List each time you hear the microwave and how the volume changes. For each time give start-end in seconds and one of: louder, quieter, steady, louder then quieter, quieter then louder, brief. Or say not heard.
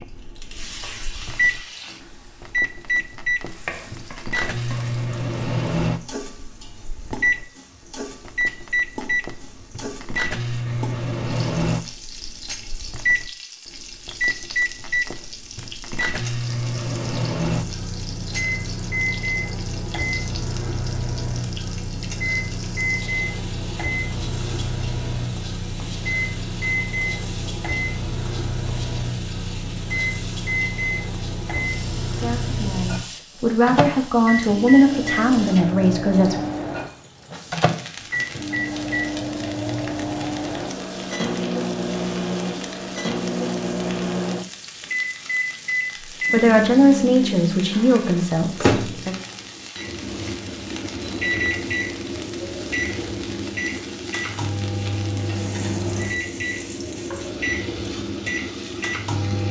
0.0-59.4 steady.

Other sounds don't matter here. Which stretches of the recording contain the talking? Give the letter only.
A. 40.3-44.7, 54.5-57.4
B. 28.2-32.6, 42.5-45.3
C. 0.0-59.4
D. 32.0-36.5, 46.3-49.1
D.